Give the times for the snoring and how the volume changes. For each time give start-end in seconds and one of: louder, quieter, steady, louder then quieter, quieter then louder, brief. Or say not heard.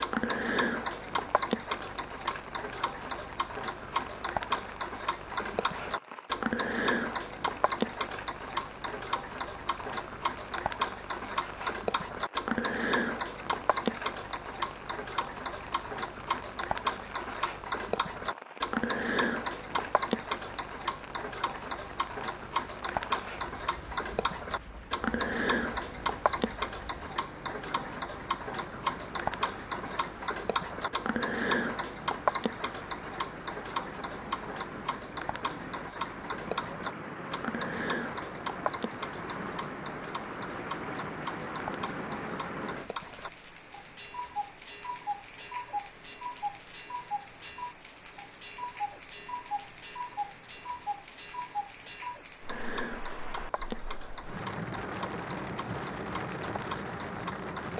not heard.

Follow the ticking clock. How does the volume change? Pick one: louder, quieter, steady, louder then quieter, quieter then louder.
quieter.